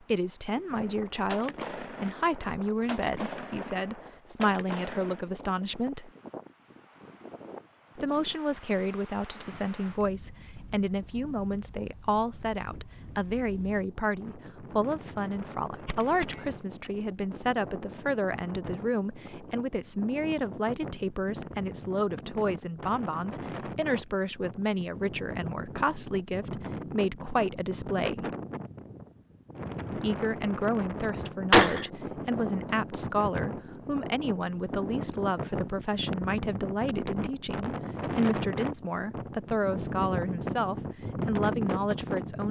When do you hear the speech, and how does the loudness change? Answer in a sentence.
The speech can be heard from 0.1 to 6.1 s, at a steady volume; from 8.0 to 28.3 s, at a steady volume; and from 29.9 to 42.4 s, at a steady volume.